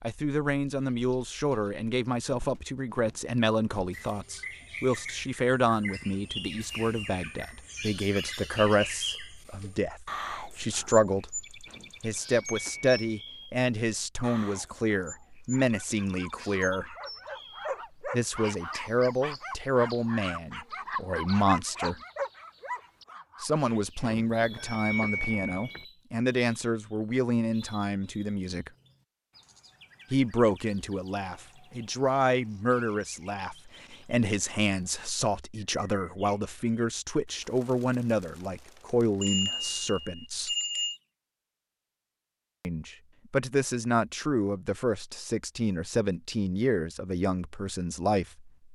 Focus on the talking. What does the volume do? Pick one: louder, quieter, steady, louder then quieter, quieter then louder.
steady.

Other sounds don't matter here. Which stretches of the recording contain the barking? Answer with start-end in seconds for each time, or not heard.
15.5-23.8.